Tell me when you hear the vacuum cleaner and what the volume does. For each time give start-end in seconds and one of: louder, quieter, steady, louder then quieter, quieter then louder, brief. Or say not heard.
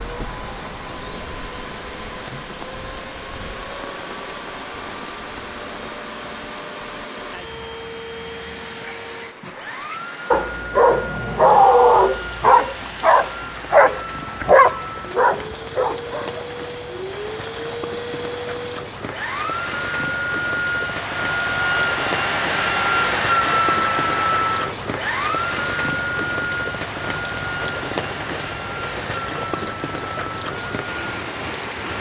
0.0-31.9 louder then quieter.